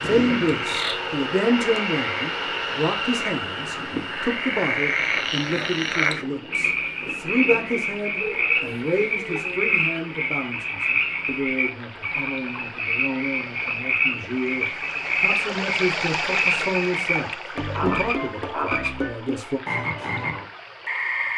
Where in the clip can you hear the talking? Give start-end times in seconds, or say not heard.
0.0-19.6.